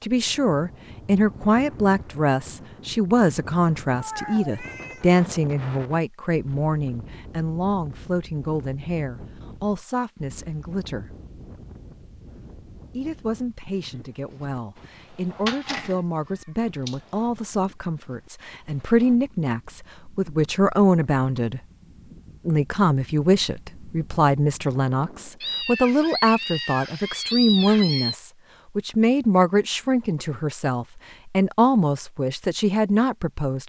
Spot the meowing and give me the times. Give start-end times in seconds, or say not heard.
4.0-5.1, 15.4-15.9, 25.4-28.1.